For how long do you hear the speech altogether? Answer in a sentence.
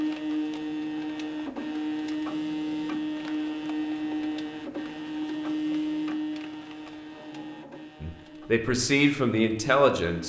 You can hear the speech for 2 seconds altogether.